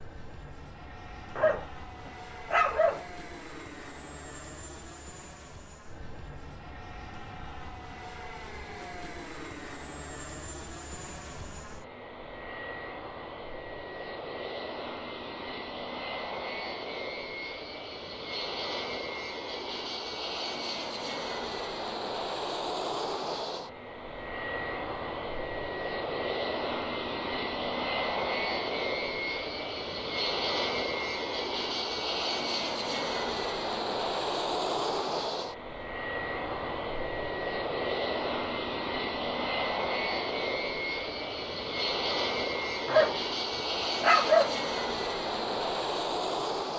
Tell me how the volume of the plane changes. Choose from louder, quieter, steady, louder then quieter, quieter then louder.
louder.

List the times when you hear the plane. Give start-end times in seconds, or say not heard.
0.0-46.7.